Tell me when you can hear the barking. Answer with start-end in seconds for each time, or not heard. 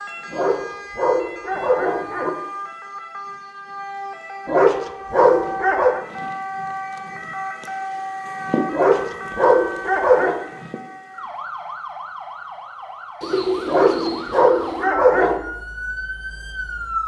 0.3-2.3, 4.5-6.0, 8.7-10.4, 13.7-15.4.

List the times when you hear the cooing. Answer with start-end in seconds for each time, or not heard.
13.2-14.9.